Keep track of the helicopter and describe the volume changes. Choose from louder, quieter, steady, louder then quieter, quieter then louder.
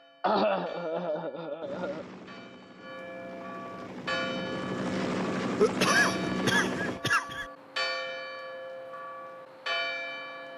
louder.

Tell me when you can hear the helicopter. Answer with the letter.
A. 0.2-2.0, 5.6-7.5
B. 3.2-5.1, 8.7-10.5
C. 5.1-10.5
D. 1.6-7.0
D.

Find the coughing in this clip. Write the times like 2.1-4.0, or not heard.
0.2-2.0, 5.6-7.5.